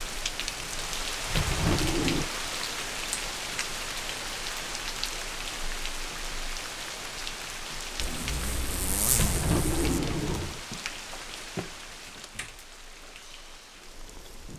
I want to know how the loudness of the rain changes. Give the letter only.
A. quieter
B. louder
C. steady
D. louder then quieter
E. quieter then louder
A.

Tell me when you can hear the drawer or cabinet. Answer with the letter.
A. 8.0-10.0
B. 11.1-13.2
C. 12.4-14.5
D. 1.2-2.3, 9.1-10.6
D.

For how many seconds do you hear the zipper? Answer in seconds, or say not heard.
2 s.